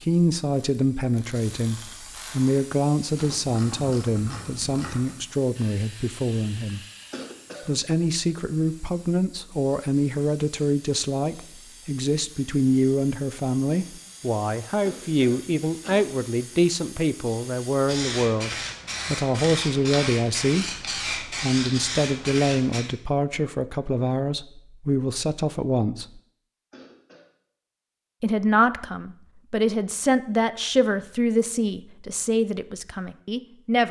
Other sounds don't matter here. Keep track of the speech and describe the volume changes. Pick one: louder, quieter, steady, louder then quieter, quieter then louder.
steady.